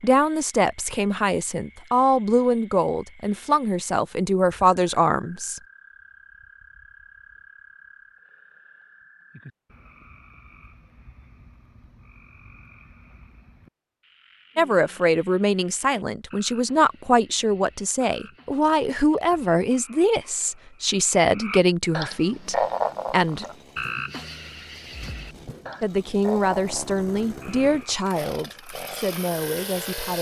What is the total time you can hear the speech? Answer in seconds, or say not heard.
19 s.